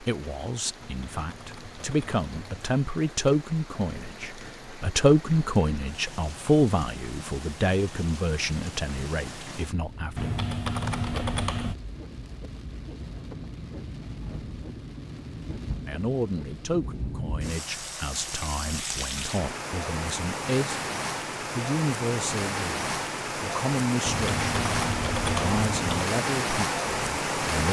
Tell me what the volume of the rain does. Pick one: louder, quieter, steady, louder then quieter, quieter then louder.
louder.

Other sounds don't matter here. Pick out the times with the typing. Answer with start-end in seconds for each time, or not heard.
0.8-2.8, 10.2-11.8, 24.1-26.1.